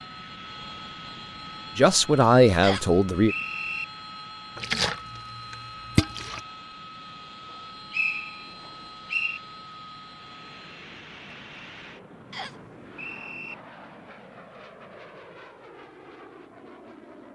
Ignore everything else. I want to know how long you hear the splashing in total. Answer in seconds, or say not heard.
2 s.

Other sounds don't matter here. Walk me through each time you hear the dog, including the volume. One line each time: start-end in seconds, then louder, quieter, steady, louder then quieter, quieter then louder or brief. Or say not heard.
not heard.